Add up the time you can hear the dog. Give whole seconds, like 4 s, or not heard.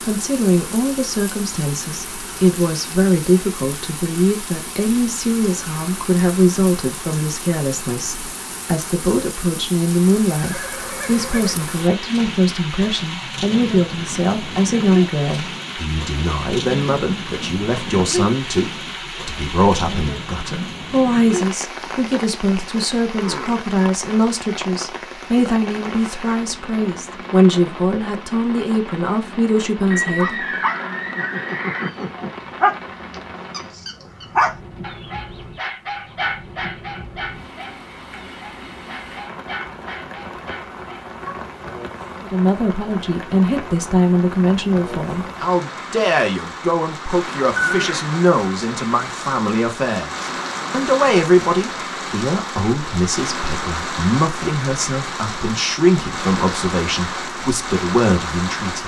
11 s.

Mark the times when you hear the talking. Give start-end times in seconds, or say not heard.
0.1-30.4, 42.2-58.8.